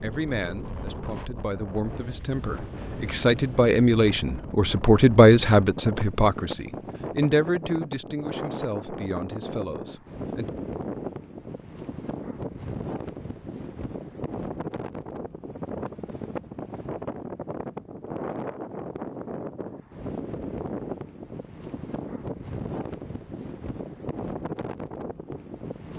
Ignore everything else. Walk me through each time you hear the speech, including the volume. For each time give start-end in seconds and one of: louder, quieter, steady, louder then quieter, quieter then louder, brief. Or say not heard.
0.0-10.5 louder then quieter.